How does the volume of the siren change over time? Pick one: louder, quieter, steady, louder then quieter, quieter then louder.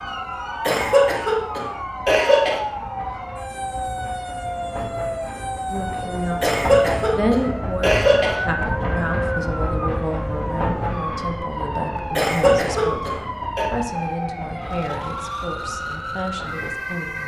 steady.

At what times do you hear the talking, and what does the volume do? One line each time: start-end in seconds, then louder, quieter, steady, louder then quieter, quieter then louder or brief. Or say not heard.
5.7-17.2 quieter.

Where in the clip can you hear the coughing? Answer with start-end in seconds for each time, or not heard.
0.6-2.6, 6.4-8.3, 12.2-13.7.